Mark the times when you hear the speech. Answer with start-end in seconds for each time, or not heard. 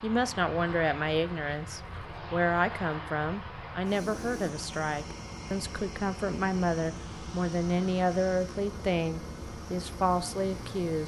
0.0-11.0.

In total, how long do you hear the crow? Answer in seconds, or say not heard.
not heard.